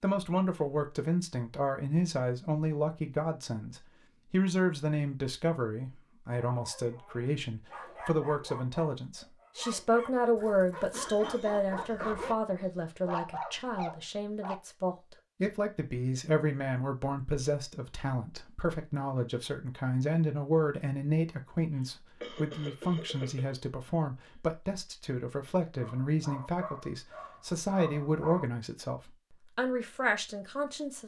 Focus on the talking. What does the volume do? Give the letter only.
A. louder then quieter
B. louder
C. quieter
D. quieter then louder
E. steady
E.